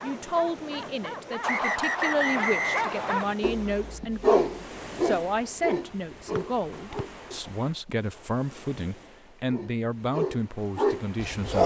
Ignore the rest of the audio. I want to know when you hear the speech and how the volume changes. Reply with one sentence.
You can hear the speech from 0.0 to 11.6 s, at a steady volume.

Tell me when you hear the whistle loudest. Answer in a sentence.
The loudest moment of the whistle is at 2 seconds.